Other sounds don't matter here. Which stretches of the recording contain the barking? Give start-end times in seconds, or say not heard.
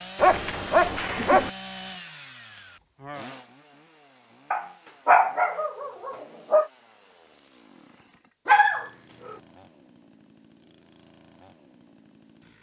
0.1-1.5, 4.5-6.7, 8.4-9.3.